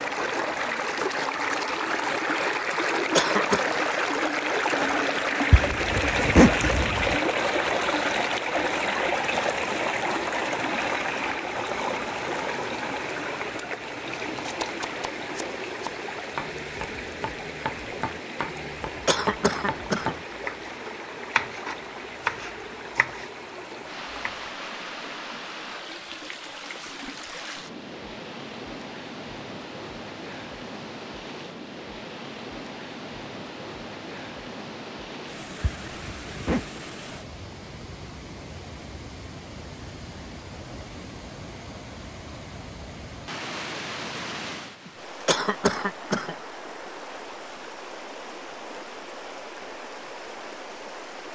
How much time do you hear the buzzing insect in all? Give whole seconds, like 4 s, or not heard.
not heard.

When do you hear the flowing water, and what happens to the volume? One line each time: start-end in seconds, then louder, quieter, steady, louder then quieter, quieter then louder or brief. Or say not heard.
0.0-51.3 quieter.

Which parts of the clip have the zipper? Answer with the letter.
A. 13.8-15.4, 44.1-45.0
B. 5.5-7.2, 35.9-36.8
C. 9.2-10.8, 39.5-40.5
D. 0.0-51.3
B.